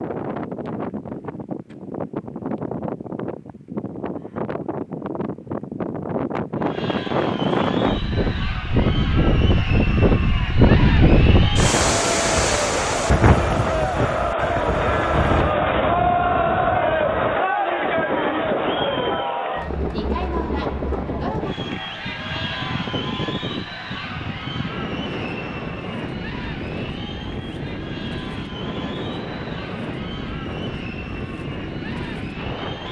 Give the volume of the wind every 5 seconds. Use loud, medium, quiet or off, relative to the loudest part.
medium, loud, loud, medium, medium, medium, medium.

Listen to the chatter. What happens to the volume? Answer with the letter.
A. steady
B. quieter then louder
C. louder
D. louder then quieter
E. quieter
D.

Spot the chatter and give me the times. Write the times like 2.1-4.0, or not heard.
6.5-32.8.